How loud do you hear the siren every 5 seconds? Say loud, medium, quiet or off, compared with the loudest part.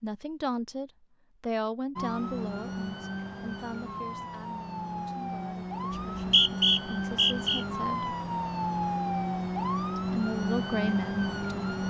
medium, loud, loud.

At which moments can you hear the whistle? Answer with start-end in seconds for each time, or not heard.
5.9-7.7.